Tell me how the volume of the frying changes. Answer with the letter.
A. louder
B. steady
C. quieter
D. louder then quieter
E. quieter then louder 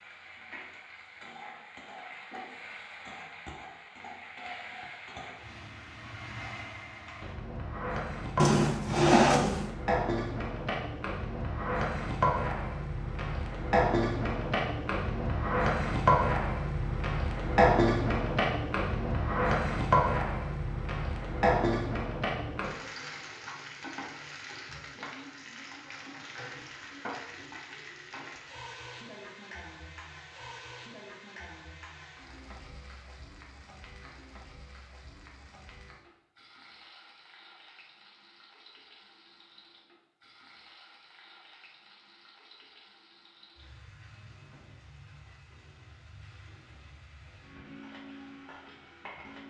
D.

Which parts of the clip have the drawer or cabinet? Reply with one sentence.
You can hear the drawer or cabinet from 8.3 to 9.7 s.